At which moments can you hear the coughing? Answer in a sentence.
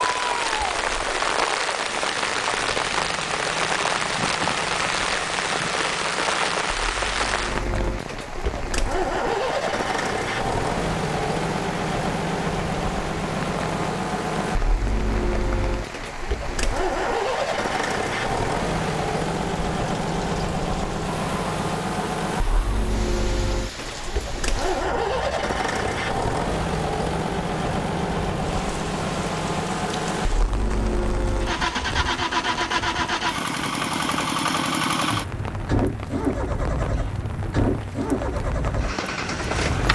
The coughing can't be heard in this clip.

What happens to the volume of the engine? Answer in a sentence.
The loudness of the engine goes up.